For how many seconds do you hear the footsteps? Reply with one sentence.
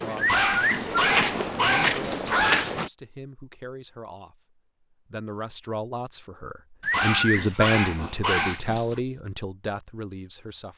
The footsteps can be heard for 3 seconds in total.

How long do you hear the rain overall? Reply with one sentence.
The rain can't be heard in this clip.